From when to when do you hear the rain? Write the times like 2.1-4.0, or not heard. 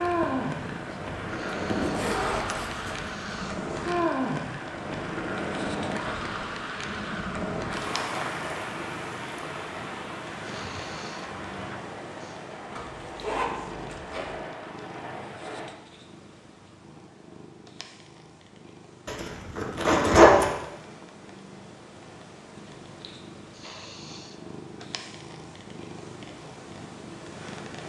0.0-15.7.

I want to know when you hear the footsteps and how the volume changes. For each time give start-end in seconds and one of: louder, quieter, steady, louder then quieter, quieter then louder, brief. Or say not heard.
not heard.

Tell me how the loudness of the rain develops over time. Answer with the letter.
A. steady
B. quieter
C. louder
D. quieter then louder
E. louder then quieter
B.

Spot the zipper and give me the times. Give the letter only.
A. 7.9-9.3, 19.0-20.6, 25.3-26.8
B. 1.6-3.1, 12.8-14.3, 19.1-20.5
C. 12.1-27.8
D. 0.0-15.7
B.